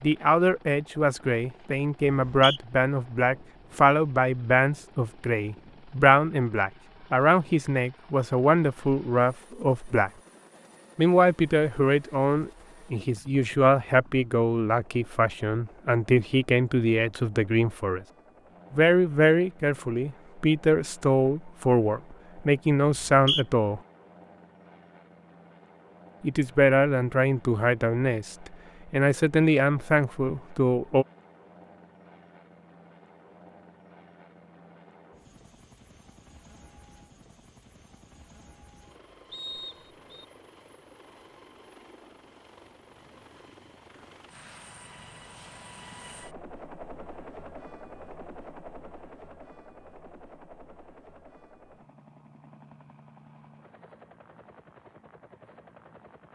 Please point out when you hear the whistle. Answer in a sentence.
The whistle can be heard from 2.0 to 2.6 s, from 22.9 to 23.4 s and from 39.3 to 40.2 s.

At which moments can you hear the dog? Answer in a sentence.
The dog can't be heard in this clip.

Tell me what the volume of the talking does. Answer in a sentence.
The loudness of the talking stays about the same.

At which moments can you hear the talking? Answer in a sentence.
You can hear the talking from 0.0 to 10.1 s, from 10.9 to 18.0 s, from 18.7 to 23.8 s and from 26.2 to 31.1 s.